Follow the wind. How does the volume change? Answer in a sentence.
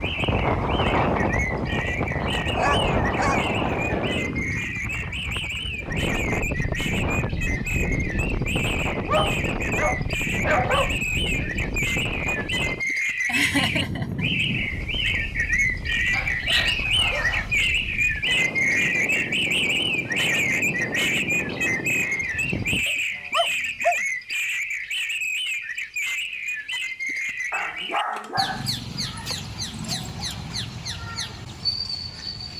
The loudness of the wind goes down.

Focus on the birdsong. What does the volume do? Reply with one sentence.
The volume of the birdsong goes up, then down.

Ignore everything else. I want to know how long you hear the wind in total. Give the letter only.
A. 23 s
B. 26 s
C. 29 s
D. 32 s
A.